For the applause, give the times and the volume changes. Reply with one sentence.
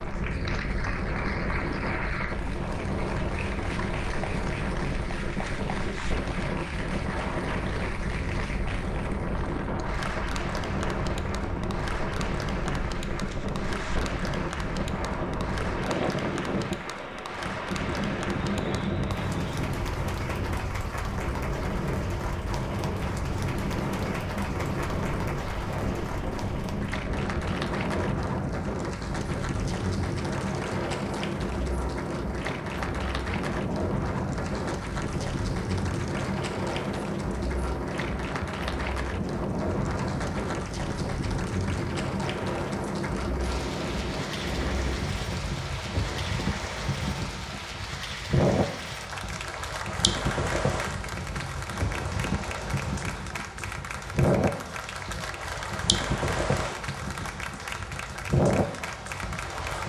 The applause can be heard from 0.0 to 59.8 s, at a steady volume.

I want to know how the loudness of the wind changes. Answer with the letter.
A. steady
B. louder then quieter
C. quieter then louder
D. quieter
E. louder
A.